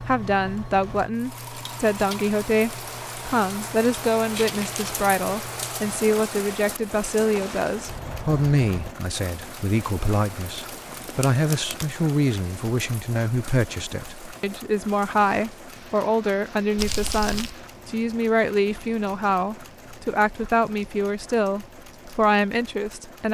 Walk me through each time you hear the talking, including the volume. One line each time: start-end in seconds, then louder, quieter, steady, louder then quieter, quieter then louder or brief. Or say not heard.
0.0-23.2 steady.